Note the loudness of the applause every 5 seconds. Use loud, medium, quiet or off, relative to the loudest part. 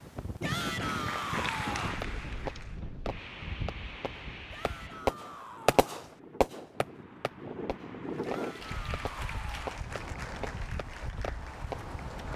loud, medium, medium.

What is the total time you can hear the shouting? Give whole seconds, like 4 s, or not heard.
5 s.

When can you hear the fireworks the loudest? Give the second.
6 s.